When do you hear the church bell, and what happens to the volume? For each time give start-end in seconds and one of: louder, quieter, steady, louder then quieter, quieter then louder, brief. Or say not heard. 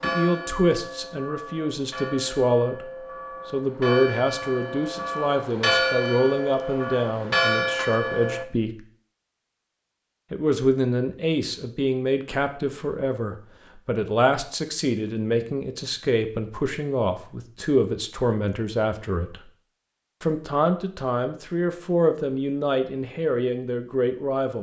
0.0-8.4 louder.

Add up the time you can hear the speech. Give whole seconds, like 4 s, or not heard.
22 s.